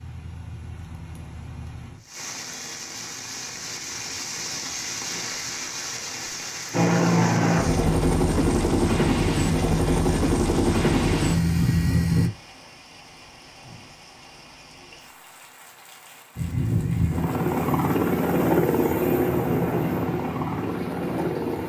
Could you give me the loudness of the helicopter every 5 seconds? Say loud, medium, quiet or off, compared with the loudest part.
off, loud, loud, loud, medium.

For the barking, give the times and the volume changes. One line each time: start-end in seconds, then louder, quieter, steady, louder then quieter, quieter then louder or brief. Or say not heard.
not heard.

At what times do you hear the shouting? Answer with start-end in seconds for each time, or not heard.
not heard.